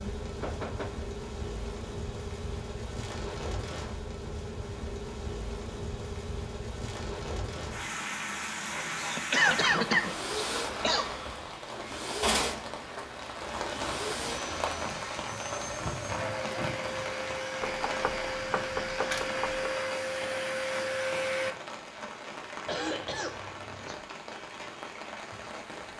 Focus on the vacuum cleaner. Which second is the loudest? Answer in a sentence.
The loudest moment of the vacuum cleaner is at 21 seconds.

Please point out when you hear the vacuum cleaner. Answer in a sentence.
You can hear the vacuum cleaner from 9.9 to 21.6 s.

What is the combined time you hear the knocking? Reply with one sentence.
You can hear the knocking for 3 seconds altogether.